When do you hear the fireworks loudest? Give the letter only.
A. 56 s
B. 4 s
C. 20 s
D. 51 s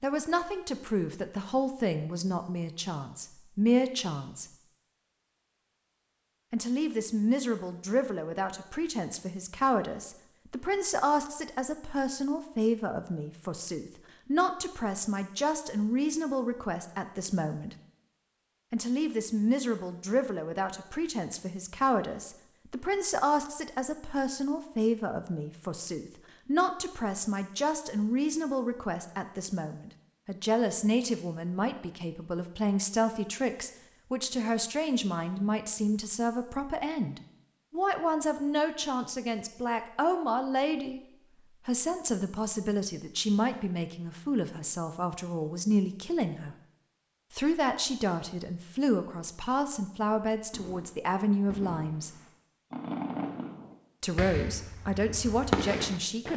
A.